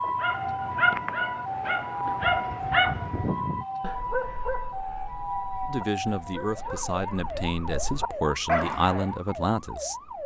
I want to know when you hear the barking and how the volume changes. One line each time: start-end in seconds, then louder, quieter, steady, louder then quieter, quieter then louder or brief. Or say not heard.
0.0-9.2 quieter then louder.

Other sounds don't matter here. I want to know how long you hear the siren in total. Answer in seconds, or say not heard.
10 s.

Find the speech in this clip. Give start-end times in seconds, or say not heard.
5.7-10.1.